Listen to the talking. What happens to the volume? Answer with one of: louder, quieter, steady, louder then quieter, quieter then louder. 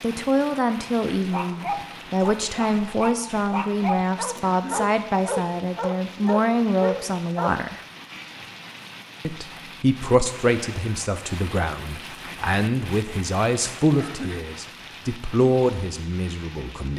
steady.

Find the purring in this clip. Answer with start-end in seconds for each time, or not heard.
not heard.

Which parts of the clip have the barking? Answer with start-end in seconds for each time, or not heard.
1.1-7.5.